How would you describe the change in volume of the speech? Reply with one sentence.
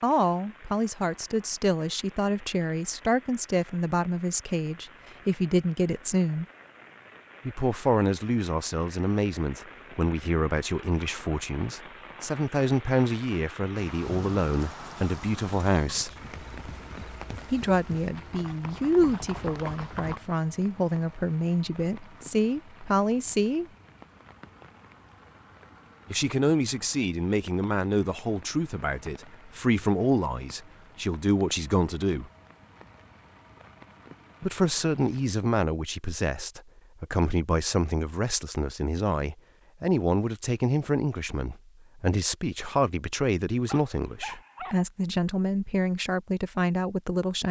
The volume of the speech stays about the same.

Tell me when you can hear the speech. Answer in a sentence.
You can hear the speech from 0.0 to 6.5 s, from 7.5 to 16.1 s, from 17.5 to 23.6 s, from 26.1 to 32.3 s and from 34.4 to 47.4 s.